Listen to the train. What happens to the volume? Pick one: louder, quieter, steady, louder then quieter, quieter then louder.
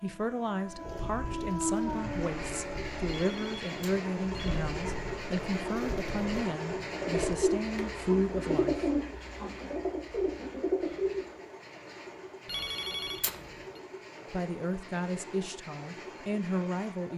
quieter.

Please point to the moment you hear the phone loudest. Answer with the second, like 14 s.
13 s.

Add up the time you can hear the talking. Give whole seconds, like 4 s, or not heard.
12 s.